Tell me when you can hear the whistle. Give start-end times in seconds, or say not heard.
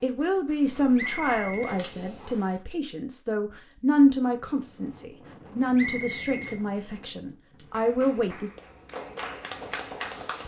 0.9-2.5, 5.8-6.6.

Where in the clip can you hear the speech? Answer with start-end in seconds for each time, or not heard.
0.0-8.5.